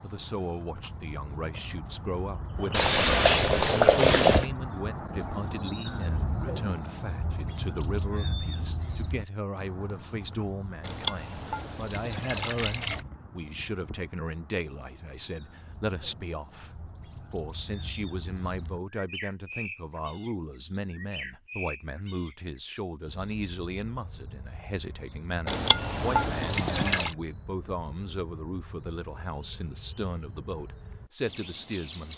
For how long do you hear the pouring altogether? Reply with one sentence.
The pouring can be heard for 6 seconds in total.